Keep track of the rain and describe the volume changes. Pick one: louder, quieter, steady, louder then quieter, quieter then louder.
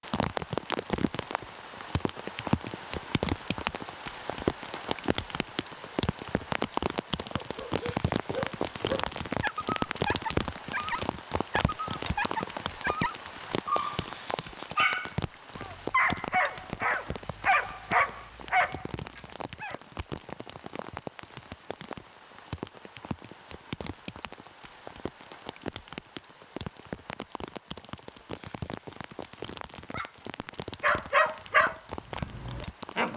quieter.